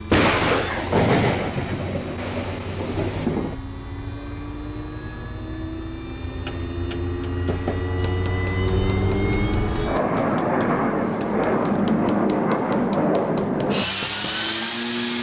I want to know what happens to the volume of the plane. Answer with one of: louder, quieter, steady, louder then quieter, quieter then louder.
louder.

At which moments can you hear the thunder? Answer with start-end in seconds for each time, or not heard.
0.1-3.5.